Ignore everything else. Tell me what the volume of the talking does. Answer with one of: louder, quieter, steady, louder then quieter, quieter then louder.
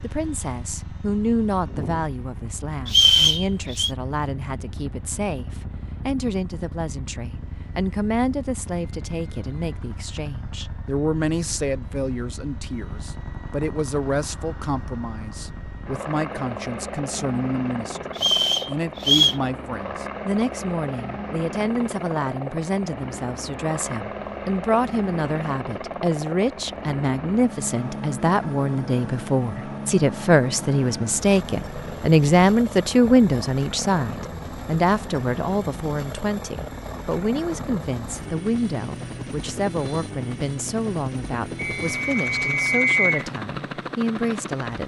louder then quieter.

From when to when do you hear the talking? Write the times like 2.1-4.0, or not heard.
0.0-44.8.